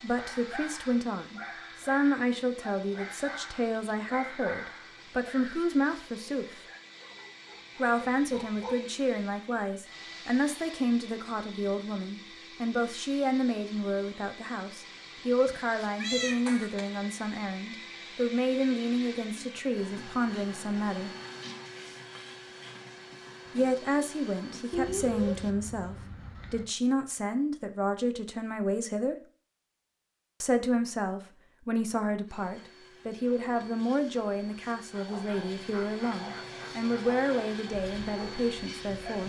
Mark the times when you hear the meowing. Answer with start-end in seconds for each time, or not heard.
15.4-16.9, 24.7-26.6.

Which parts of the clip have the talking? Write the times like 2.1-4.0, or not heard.
0.0-6.6, 7.8-21.1, 23.5-29.1, 30.4-39.2.